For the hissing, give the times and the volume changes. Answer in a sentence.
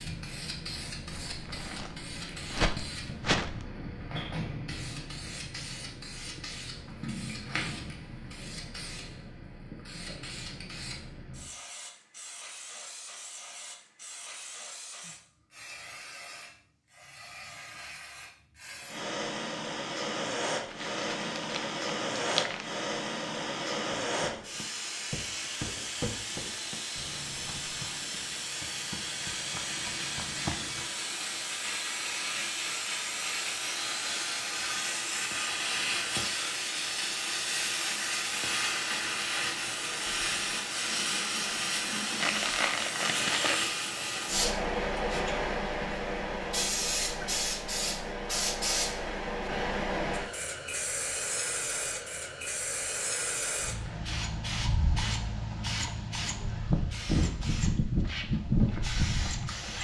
The hissing can be heard from 0.0 to 59.7 s, getting louder.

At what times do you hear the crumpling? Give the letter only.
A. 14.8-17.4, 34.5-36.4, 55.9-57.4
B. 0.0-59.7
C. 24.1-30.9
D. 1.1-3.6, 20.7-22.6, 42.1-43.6
D.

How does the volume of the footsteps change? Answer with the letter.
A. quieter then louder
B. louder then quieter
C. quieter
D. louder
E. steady
A.